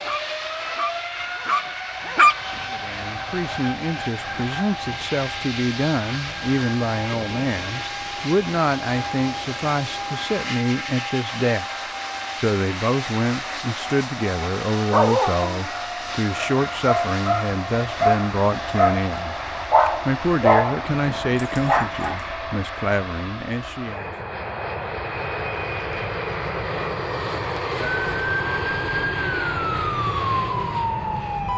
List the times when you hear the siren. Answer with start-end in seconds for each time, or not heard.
27.8-31.5.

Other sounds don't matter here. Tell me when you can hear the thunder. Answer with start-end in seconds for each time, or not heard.
not heard.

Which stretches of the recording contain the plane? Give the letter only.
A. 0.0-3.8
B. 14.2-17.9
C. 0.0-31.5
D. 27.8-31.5
C.